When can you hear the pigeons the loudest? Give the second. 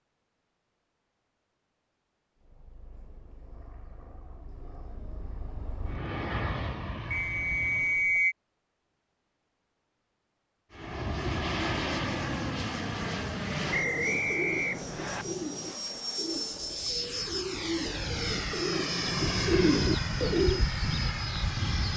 20 s.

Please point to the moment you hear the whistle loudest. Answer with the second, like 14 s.
8 s.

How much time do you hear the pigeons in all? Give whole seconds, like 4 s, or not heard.
7 s.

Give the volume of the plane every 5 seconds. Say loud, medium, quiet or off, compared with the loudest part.
quiet, medium, loud, loud, loud.